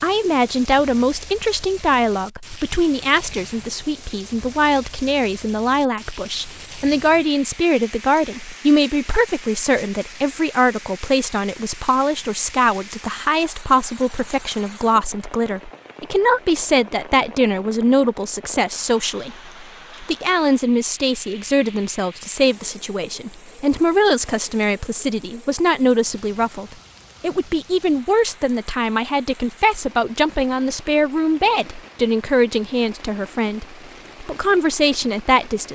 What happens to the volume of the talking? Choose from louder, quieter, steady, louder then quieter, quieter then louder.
steady.